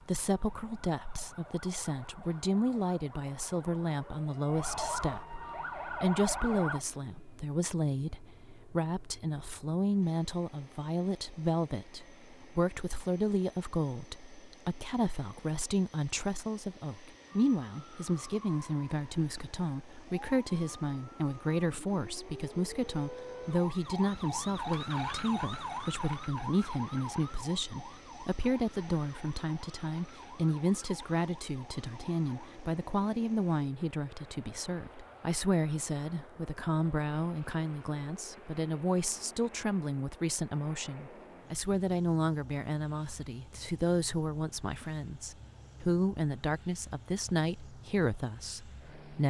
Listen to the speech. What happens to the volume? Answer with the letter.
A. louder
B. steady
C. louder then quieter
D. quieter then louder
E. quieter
B.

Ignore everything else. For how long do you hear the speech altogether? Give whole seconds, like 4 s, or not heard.
49 s.